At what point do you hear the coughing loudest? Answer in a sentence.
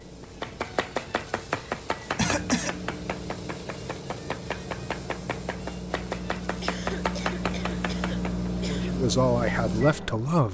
The volume of the coughing peaks at 2 seconds.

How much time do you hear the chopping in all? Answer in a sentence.
The chopping can be heard for 8 seconds in total.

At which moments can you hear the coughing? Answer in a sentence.
You can hear the coughing from 1.5 to 2.8 s and from 6.6 to 8.9 s.